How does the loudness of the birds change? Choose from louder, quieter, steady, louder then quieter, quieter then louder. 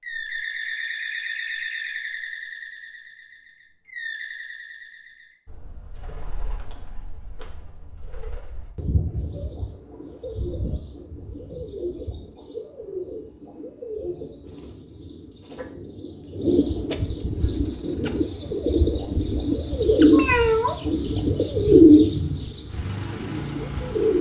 quieter then louder.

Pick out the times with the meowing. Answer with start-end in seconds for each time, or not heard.
20.1-20.8.